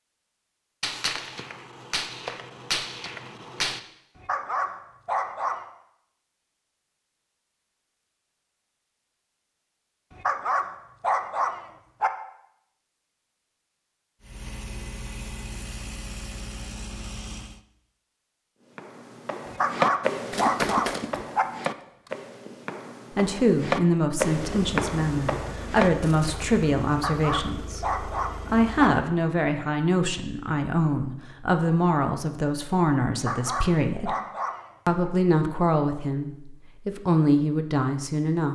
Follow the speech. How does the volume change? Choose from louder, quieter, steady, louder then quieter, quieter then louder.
steady.